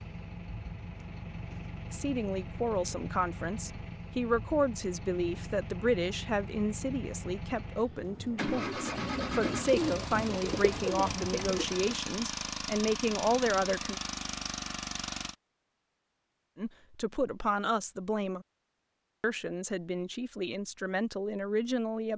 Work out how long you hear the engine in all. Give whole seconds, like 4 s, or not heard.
15 s.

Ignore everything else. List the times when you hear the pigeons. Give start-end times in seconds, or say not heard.
8.7-11.9.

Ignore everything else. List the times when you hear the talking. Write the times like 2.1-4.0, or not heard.
1.9-13.9, 16.6-18.4, 19.2-22.1.